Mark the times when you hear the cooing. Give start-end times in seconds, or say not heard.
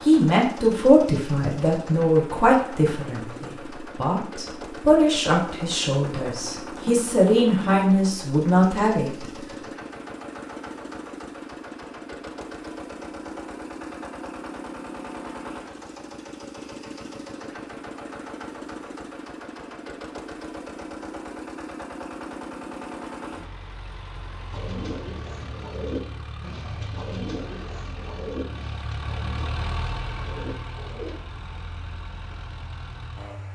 24.5-31.2.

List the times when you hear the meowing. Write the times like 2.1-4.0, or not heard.
not heard.